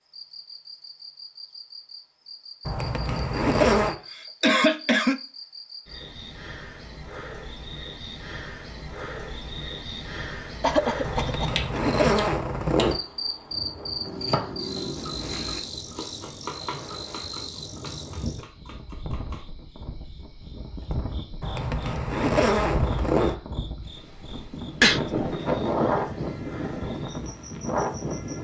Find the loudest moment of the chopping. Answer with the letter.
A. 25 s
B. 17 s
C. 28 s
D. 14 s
D.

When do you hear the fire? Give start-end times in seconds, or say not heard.
not heard.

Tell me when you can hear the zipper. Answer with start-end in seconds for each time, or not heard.
2.6-4.0, 11.0-13.0, 21.4-23.4.